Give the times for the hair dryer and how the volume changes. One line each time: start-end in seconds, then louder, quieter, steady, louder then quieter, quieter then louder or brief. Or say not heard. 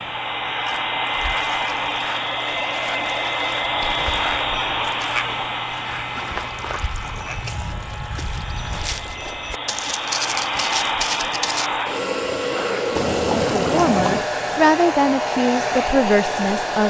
0.0-16.8 quieter then louder.